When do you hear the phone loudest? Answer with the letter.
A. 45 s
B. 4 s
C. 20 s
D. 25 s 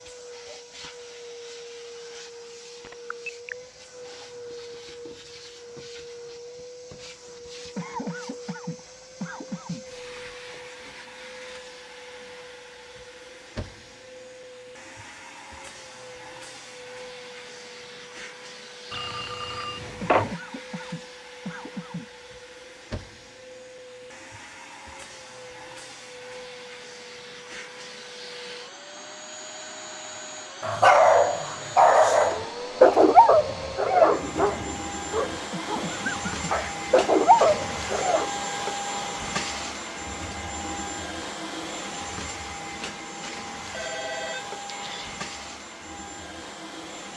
C.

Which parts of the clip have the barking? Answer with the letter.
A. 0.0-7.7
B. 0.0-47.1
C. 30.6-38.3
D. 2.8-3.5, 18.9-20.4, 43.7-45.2
C.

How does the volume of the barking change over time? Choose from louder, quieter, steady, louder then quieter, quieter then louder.
quieter then louder.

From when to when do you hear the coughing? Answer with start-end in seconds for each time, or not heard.
7.8-9.8, 20.0-22.1, 35.5-36.5.